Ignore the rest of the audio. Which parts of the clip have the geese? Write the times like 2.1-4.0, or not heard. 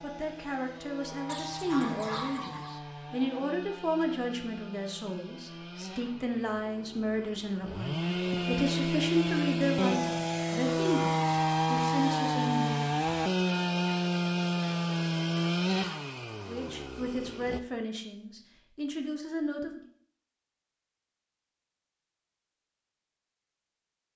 1.2-2.8.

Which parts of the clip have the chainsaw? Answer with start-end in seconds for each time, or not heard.
0.0-17.6.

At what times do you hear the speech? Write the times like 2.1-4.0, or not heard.
0.0-12.8, 16.4-19.8.